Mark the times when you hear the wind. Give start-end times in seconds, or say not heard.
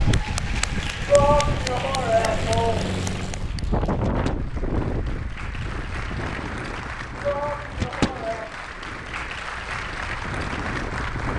0.0-11.3.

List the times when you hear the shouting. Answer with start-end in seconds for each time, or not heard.
1.1-3.0, 7.2-8.6.